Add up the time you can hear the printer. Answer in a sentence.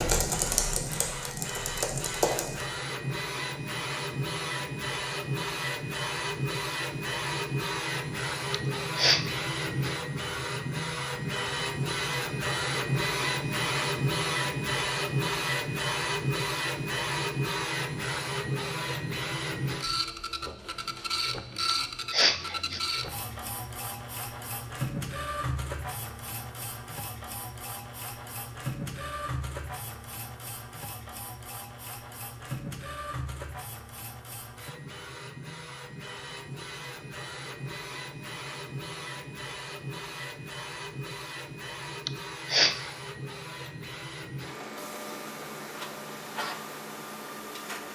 You can hear the printer for 48 seconds altogether.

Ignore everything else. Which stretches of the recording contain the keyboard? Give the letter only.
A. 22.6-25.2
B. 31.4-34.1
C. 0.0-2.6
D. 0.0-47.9
C.